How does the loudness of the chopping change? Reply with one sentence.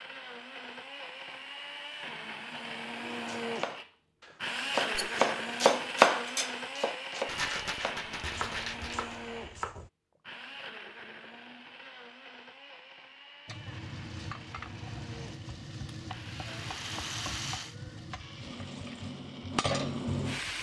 The loudness of the chopping goes up, then down.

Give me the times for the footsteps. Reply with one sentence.
The footsteps can't be heard in this clip.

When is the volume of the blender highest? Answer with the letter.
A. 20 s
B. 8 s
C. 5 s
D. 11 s
C.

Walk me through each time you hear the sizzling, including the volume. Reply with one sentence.
You can hear the sizzling from 13.4 to 20.5 s, getting louder.